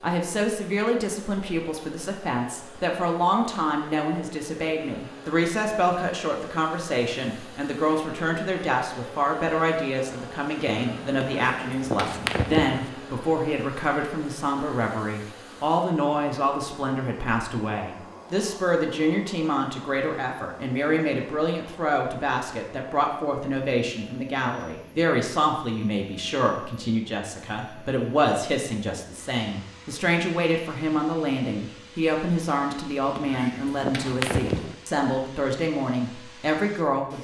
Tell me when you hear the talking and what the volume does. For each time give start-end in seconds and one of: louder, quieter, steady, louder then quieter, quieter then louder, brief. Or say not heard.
0.0-37.1 steady.